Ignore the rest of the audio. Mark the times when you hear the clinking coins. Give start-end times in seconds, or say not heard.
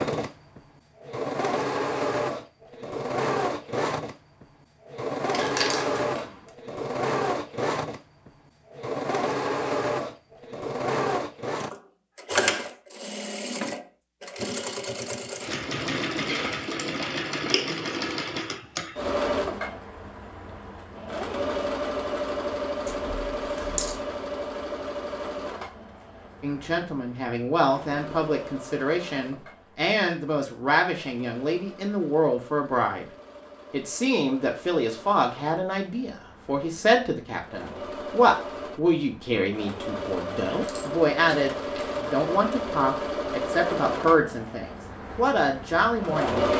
5.3-6.4, 22.9-23.9, 40.5-42.0.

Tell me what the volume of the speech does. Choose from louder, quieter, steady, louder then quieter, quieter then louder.
steady.